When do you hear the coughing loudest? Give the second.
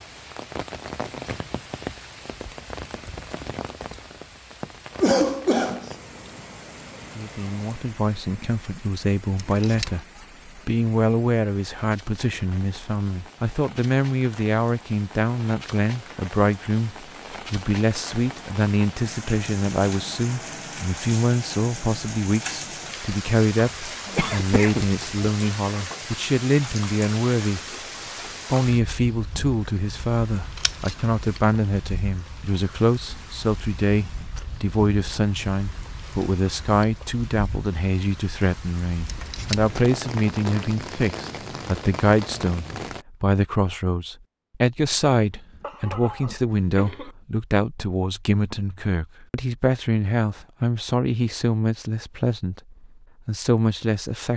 5 s.